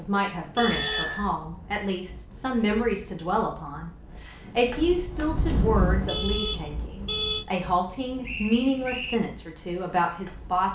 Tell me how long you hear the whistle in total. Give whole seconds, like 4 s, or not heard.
2 s.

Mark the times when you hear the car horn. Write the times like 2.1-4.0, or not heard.
0.6-1.1, 6.0-7.5.